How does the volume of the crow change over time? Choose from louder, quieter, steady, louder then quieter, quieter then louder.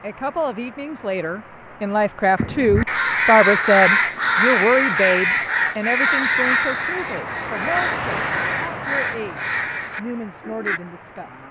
quieter.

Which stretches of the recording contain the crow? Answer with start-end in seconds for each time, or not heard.
2.4-10.8.